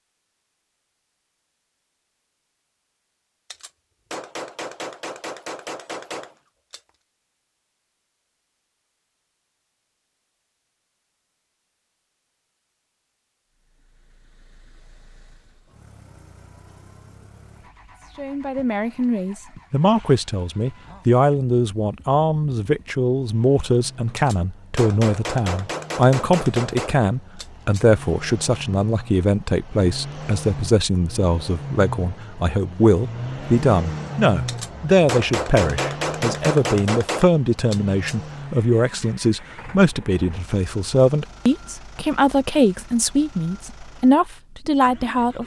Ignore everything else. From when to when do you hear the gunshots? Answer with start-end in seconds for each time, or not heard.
3.5-6.8, 24.1-27.9, 34.5-38.1.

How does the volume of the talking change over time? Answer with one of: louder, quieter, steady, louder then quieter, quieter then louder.
steady.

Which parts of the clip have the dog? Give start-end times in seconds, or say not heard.
not heard.